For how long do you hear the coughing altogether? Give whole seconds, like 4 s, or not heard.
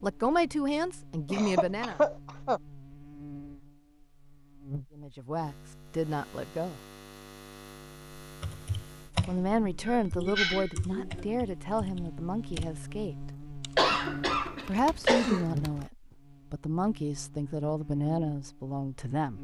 5 s.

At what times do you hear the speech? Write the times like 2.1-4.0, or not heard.
0.0-2.0, 5.0-6.8, 9.2-13.2, 14.7-19.3.